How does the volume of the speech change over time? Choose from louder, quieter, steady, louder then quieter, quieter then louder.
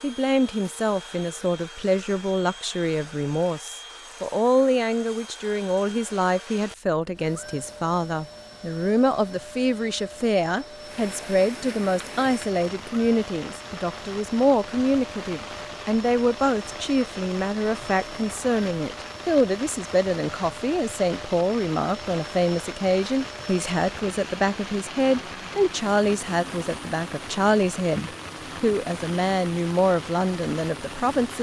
steady.